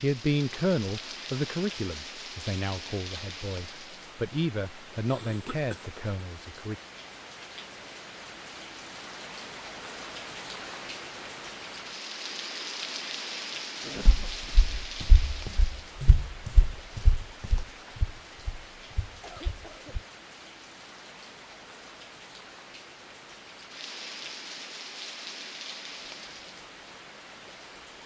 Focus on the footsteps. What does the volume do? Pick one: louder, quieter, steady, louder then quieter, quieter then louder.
louder then quieter.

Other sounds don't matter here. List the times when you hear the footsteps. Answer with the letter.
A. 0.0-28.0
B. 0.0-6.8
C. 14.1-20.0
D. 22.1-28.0
C.